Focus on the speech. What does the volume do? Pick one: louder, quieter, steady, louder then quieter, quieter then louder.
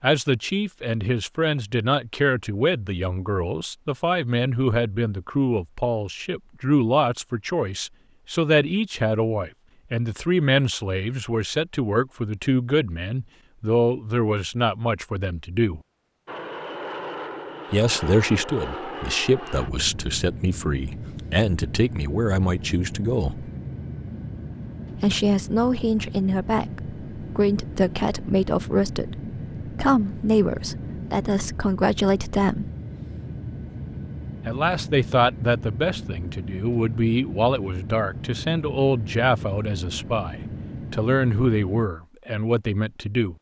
steady.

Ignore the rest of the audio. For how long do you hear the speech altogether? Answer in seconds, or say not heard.
38 s.